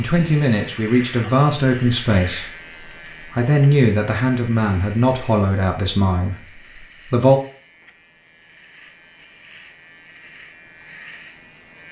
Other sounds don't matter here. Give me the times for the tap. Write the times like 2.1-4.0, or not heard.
not heard.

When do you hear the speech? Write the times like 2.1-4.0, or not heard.
0.0-7.4.